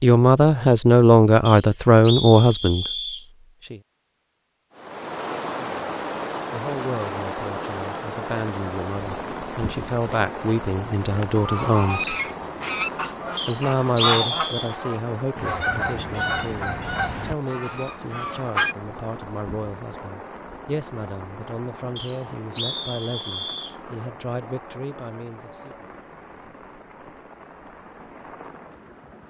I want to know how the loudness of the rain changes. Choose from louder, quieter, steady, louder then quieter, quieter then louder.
quieter.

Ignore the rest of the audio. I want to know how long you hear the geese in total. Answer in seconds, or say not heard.
8 s.